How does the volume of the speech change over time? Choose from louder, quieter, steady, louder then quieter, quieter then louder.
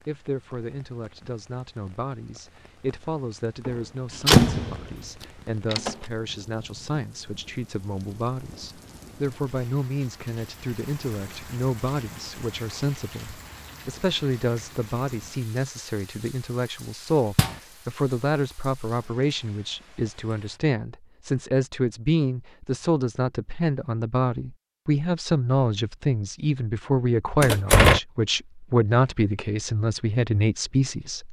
louder.